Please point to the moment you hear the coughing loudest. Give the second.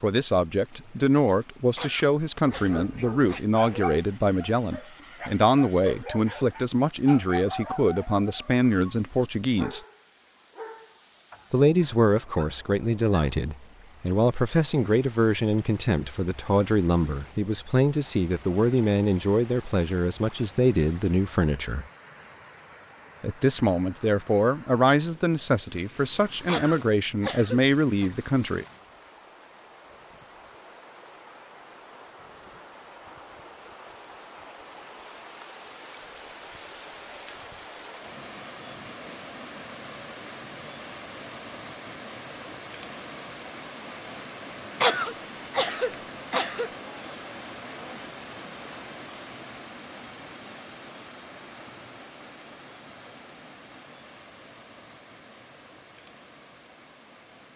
45 s.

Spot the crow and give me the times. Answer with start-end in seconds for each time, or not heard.
not heard.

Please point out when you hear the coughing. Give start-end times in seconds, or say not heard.
1.8-3.5, 26.4-28.1, 44.8-46.7.